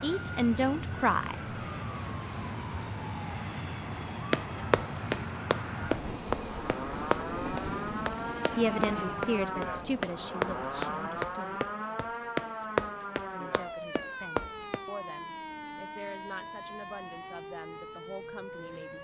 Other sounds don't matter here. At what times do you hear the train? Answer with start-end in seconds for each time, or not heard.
0.0-18.9.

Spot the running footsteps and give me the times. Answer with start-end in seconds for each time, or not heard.
4.3-14.8.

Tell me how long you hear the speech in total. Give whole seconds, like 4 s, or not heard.
10 s.